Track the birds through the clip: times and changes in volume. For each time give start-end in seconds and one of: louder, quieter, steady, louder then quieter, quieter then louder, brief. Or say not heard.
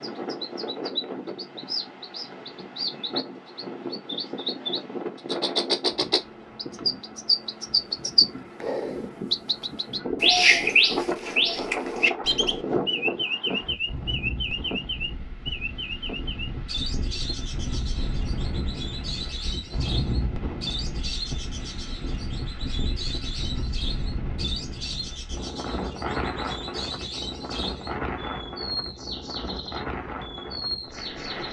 0.0-31.4 louder then quieter.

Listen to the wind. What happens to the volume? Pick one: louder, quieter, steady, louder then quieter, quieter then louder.
steady.